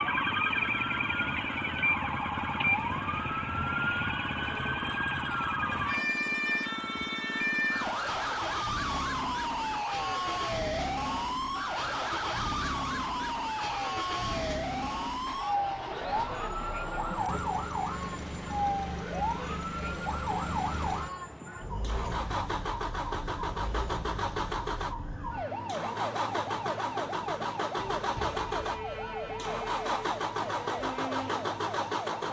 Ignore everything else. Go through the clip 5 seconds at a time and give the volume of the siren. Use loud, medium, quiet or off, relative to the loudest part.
loud, loud, loud, loud, medium, medium, medium.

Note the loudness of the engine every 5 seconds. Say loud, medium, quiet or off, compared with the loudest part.
medium, medium, medium, medium, loud, loud, loud.